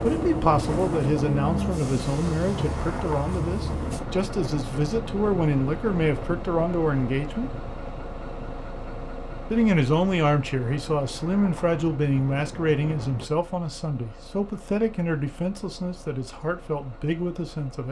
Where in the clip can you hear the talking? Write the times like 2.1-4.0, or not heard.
0.0-7.5, 9.5-17.8.